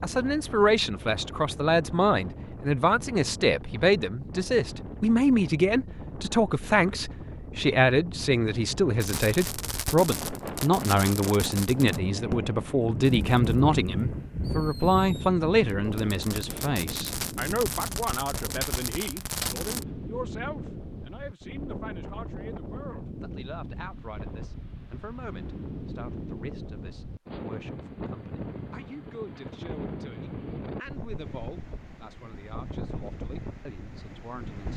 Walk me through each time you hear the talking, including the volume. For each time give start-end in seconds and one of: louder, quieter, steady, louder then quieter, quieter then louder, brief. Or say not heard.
0.0-34.7 quieter.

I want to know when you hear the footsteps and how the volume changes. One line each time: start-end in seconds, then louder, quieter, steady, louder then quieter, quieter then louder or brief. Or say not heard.
not heard.